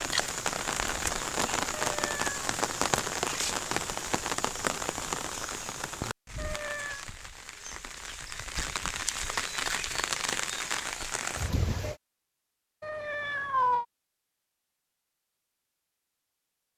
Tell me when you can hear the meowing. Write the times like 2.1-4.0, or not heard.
1.9-2.4, 6.3-7.0, 12.8-13.8.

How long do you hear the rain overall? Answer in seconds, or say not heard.
12 s.